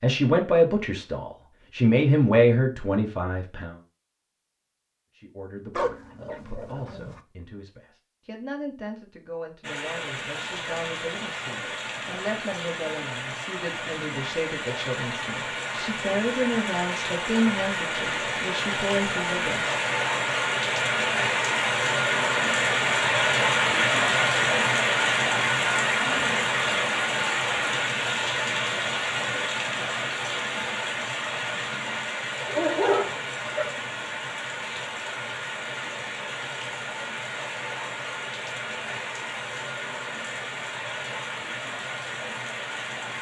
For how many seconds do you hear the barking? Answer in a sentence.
You can hear the barking for 3 seconds altogether.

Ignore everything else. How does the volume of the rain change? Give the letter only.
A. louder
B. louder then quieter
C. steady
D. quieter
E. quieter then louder
B.